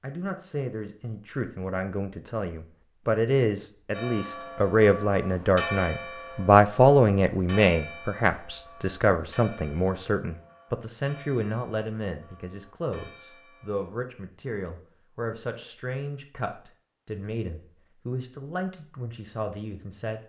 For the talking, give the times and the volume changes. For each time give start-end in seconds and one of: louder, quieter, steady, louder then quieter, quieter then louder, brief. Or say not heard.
0.0-20.2 louder then quieter.